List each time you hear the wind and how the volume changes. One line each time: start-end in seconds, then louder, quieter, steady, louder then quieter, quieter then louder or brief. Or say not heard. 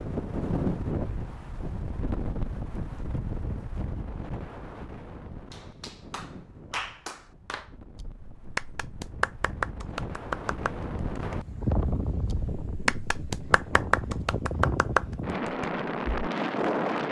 0.0-17.0 quieter then louder.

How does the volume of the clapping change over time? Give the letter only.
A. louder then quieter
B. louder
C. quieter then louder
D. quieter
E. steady
B.